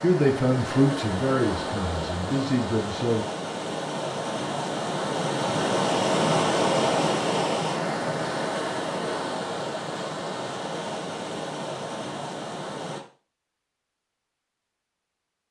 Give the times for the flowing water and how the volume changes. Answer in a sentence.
You can hear the flowing water from 0.0 to 13.0 s, getting louder then quieter.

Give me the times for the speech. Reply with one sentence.
The speech can be heard from 0.0 to 3.2 s.